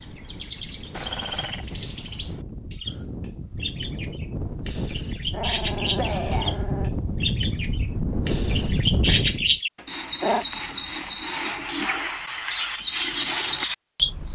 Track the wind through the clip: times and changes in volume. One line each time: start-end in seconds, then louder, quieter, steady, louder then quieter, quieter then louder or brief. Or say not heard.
0.0-9.6 louder.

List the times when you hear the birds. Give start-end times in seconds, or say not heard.
0.0-3.0, 3.6-6.5, 7.2-14.2.